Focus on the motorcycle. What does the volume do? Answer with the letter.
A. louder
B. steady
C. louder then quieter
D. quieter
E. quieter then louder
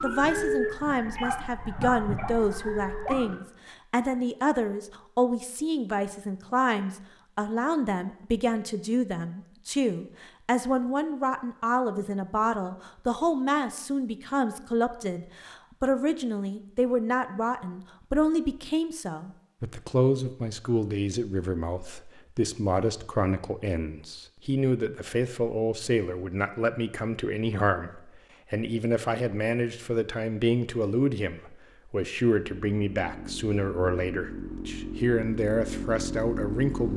A.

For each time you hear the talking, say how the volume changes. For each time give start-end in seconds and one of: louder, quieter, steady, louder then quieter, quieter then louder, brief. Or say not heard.
0.0-36.9 steady.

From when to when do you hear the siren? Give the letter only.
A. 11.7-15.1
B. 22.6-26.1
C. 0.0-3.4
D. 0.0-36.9
C.